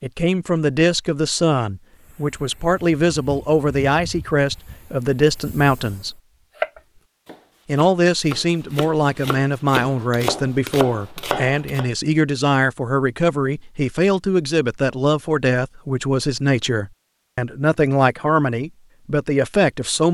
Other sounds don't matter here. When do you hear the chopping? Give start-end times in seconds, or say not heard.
6.5-11.9.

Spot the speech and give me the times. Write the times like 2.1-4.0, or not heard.
0.0-6.2, 7.7-20.0.